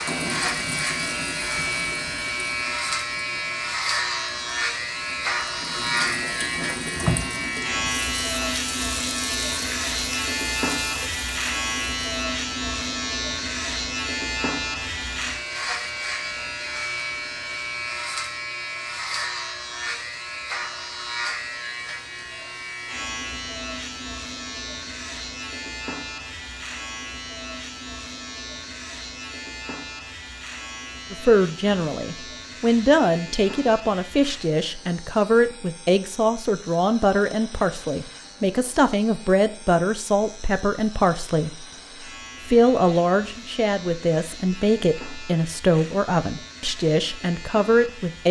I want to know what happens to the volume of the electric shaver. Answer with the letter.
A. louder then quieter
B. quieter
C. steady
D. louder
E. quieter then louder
B.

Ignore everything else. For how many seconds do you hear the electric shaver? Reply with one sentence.
The electric shaver can be heard for 48 seconds in total.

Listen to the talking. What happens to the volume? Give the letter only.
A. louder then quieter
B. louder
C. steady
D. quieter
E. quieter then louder
C.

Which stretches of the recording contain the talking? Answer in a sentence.
The talking can be heard from 31.1 to 41.6 s and from 42.5 to 48.2 s.